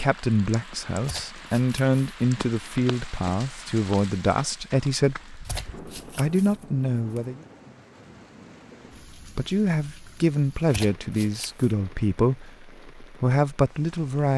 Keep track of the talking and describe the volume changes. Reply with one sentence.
The volume of the talking stays about the same.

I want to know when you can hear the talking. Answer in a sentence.
You can hear the talking from 0.0 to 7.4 s and from 9.2 to 14.3 s.